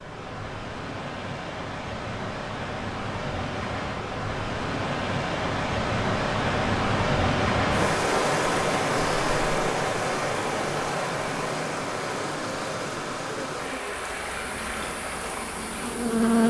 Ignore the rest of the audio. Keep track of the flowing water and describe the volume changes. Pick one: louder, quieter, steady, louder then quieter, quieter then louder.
louder then quieter.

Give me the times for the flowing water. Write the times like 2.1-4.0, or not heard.
0.0-16.4.